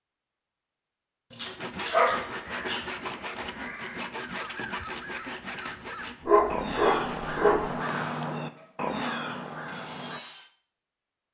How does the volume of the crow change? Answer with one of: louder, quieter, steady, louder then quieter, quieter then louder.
louder.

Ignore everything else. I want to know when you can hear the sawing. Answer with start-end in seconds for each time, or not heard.
1.4-10.5.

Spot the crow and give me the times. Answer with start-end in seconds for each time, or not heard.
2.2-10.2.